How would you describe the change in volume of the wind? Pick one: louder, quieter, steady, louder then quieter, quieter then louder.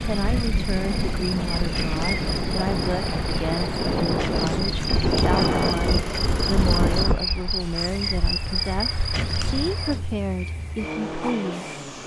louder.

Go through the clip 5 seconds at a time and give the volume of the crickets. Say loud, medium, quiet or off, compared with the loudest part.
loud, loud, quiet.